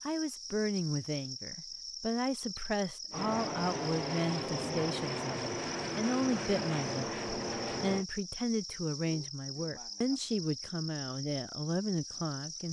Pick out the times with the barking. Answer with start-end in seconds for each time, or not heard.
not heard.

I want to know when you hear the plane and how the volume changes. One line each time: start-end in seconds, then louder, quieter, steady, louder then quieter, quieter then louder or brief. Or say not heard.
3.1-8.1 steady.